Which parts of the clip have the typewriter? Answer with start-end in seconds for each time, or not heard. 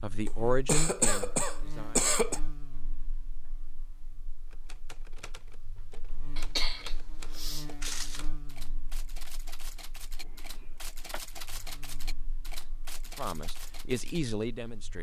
4.5-14.2.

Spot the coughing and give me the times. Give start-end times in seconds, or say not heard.
0.2-2.4, 6.3-8.2, 10.2-11.2.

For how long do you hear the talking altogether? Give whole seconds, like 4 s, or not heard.
4 s.